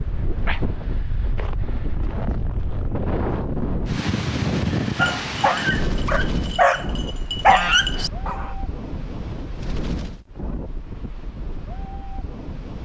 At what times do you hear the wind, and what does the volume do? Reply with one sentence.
The wind can be heard from 0.0 to 12.8 s, getting louder then quieter.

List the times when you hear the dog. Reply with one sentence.
The dog can be heard from 5.0 to 8.6 s.